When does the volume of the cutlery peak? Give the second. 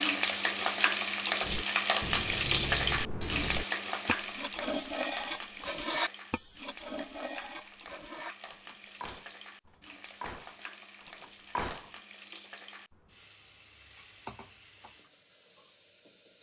6 s.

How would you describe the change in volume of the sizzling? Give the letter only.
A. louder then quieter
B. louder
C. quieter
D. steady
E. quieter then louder
C.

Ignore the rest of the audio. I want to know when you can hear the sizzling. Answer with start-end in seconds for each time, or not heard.
0.0-16.3.